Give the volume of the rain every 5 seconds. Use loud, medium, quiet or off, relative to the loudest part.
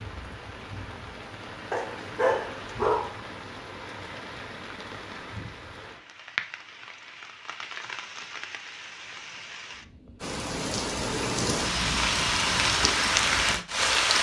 quiet, quiet, loud.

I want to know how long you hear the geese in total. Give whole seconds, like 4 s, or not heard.
not heard.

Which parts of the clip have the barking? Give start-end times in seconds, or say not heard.
1.7-3.1.